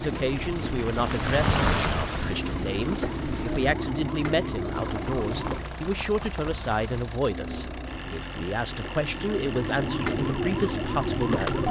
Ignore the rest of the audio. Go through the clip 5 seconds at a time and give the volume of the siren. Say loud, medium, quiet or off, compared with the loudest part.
medium, medium, loud.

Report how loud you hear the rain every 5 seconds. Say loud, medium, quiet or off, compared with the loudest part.
loud, medium, off.